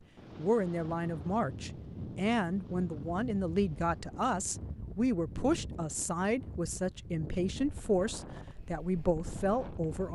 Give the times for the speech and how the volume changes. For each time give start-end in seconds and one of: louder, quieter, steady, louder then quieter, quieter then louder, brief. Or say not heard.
0.3-10.1 steady.